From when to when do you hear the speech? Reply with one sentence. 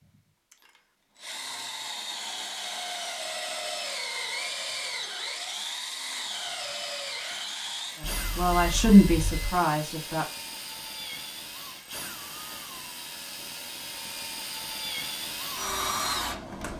You can hear the speech from 8.0 to 10.2 s.